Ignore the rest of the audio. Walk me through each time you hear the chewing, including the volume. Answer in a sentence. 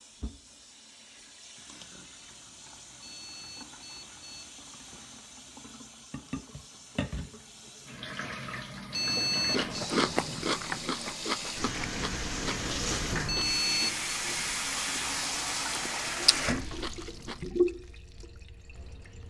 The chewing can be heard from 9.5 to 17.4 s, getting quieter then louder.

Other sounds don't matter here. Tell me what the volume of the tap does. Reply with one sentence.
The volume of the tap goes up.